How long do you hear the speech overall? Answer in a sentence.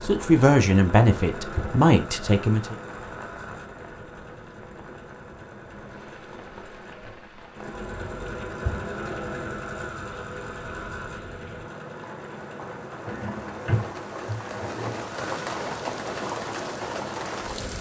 The speech can be heard for 3 seconds in total.